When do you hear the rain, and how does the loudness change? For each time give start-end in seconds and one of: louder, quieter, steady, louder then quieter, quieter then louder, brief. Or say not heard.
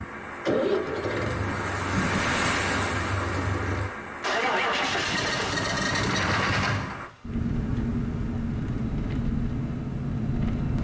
0.0-7.1 louder then quieter.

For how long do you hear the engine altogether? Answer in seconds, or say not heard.
11 s.